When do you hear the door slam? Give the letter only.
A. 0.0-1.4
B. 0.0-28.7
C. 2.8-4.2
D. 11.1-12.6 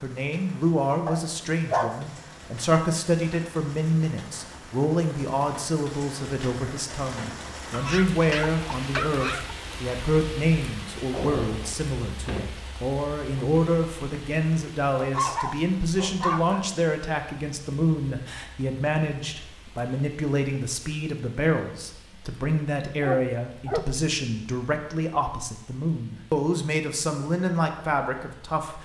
D.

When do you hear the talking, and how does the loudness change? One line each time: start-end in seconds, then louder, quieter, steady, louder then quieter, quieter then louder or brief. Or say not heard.
0.0-28.7 steady.